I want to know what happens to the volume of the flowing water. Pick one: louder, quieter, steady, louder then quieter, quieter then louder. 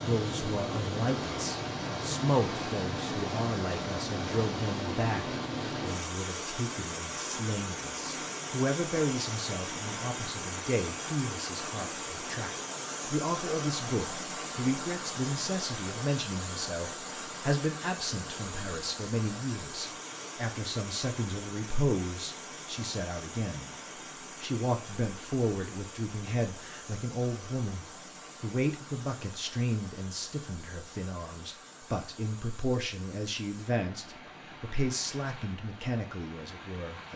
quieter.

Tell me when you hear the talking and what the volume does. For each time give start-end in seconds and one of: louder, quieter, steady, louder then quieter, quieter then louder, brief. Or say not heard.
0.0-23.7 steady
24.4-37.1 steady.